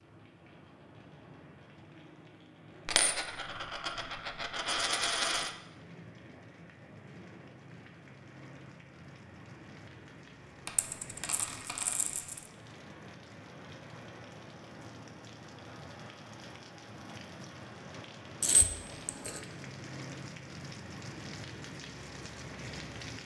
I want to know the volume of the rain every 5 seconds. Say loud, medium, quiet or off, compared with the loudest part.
medium, medium, medium, loud, loud.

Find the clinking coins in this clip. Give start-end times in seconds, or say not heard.
2.9-5.5, 10.7-12.4, 18.4-19.4.